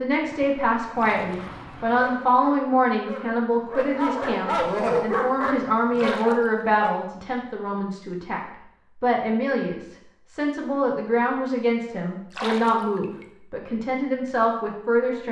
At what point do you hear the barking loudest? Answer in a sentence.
The volume of the barking peaks at 5 seconds.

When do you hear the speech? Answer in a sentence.
You can hear the speech from 0.0 to 15.2 s.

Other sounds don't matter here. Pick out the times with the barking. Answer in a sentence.
The barking can be heard from 1.9 to 6.9 s.